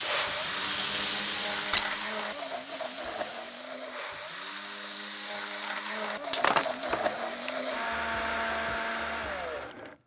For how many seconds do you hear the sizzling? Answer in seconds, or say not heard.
4 s.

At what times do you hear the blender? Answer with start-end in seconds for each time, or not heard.
0.0-10.0.